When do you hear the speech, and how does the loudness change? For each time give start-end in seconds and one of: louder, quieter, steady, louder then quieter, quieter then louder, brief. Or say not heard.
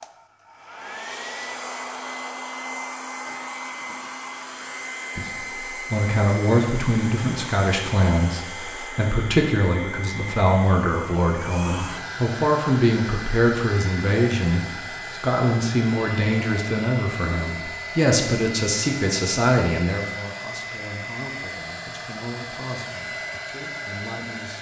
5.2-24.5 quieter.